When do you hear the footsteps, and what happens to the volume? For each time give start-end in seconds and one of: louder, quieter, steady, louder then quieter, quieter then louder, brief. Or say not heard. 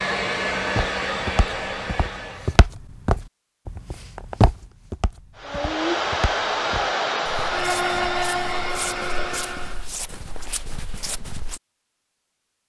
0.6-11.6 louder then quieter.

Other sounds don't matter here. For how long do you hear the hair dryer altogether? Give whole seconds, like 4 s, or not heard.
7 s.